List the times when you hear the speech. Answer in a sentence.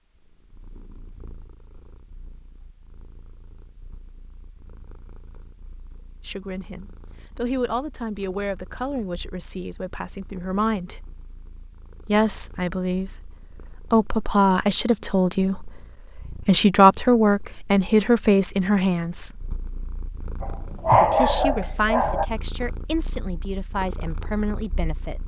You can hear the speech from 6.2 to 11.0 s, from 12.1 to 19.4 s and from 20.9 to 25.2 s.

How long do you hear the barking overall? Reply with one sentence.
You can hear the barking for 2 seconds altogether.